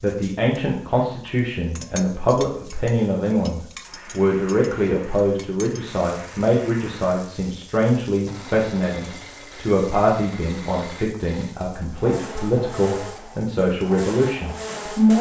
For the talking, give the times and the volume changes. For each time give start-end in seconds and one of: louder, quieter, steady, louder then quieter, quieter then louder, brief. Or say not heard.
0.0-15.1 steady.